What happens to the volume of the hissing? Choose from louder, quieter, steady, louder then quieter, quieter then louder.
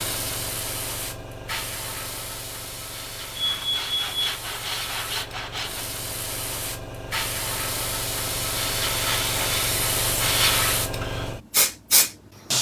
louder.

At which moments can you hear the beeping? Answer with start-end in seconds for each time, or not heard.
3.4-4.3.